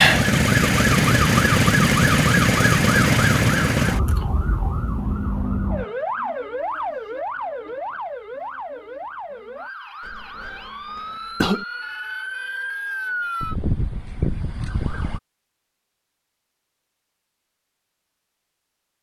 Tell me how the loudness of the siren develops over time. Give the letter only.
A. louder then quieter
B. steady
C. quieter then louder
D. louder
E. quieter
C.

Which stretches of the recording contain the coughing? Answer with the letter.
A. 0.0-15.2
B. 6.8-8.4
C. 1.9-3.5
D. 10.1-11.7
D.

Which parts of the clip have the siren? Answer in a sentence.
You can hear the siren from 0.0 to 15.2 s.